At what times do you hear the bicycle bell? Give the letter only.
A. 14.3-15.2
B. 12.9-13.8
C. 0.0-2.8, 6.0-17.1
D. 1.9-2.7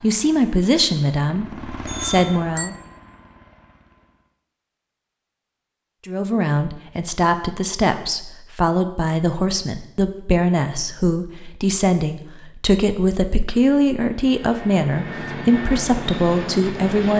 D.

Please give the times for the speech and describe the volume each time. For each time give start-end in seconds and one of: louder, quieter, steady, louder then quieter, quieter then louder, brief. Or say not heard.
0.0-2.8 brief
6.0-17.1 steady.